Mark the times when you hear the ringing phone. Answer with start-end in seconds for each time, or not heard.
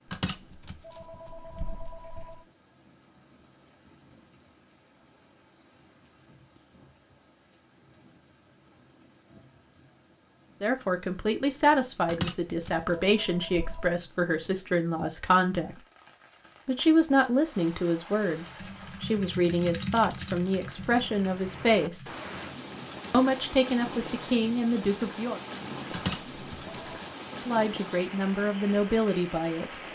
0.1-2.4, 12.1-13.9, 25.9-27.0.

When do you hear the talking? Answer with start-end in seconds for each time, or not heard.
10.6-15.8, 16.6-22.1, 23.1-25.4, 27.4-29.8.